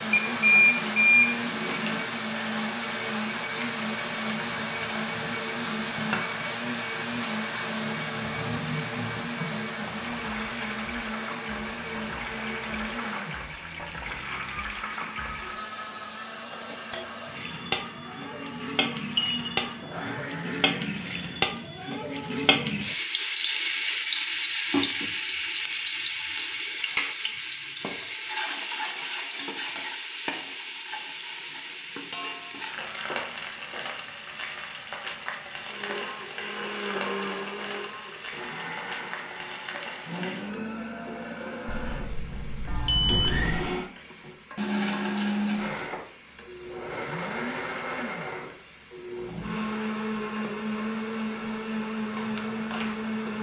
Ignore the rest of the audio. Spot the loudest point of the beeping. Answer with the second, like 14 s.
1 s.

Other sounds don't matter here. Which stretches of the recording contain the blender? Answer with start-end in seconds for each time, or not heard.
0.0-21.6, 35.6-53.3.